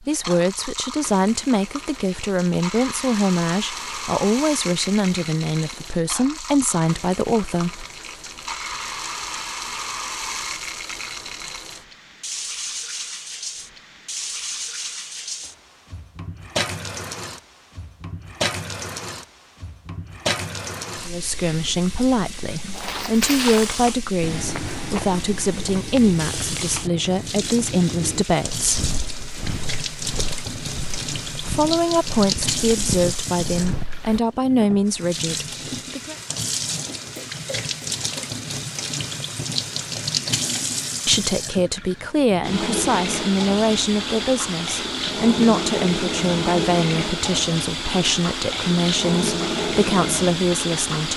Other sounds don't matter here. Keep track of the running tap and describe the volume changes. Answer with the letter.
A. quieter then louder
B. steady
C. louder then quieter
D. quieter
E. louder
E.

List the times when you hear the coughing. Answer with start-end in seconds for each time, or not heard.
36.9-38.4.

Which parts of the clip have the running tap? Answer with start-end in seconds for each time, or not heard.
0.0-51.1.